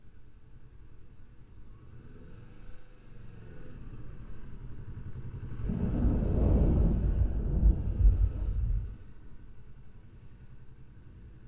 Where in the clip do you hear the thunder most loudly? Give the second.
7 s.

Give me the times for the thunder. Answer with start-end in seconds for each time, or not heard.
5.6-8.9.